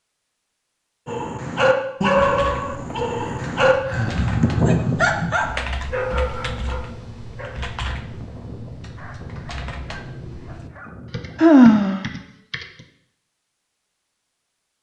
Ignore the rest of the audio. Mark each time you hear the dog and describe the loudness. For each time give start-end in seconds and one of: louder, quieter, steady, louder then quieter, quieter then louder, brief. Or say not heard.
1.1-11.4 quieter.